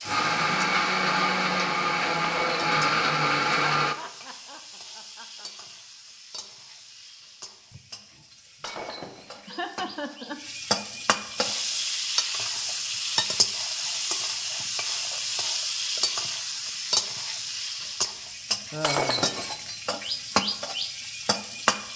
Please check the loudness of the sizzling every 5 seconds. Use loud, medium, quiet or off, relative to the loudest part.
quiet, quiet, loud, loud, loud.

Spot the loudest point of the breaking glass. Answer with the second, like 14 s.
19 s.